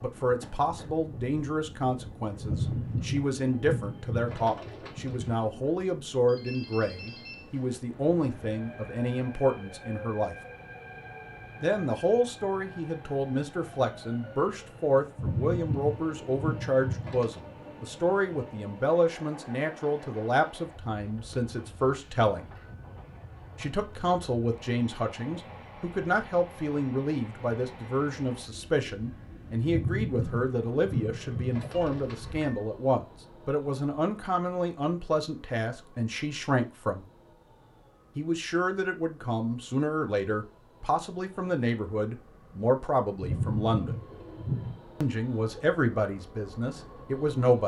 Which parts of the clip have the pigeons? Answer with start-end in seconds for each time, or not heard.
2.4-5.4, 15.2-17.4, 29.6-32.2, 43.2-44.8.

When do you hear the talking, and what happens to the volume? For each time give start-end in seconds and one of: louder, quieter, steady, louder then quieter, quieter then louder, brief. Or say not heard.
0.0-10.3 steady
11.6-22.5 steady
23.6-37.0 steady
38.1-44.0 steady
45.0-47.6 brief.